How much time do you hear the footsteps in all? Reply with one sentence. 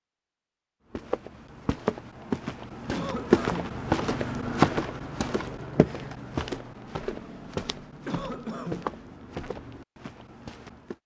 You can hear the footsteps for 10 seconds altogether.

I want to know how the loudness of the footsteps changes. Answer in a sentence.
The loudness of the footsteps goes up, then down.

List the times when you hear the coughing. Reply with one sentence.
The coughing can be heard from 2.9 to 3.8 s and from 8.1 to 8.9 s.